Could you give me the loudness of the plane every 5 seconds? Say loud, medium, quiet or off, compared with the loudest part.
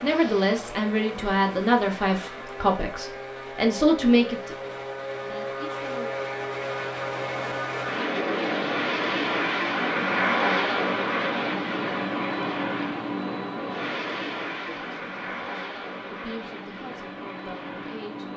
medium, loud, loud, medium.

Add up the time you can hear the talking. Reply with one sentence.
You can hear the talking for 10 seconds altogether.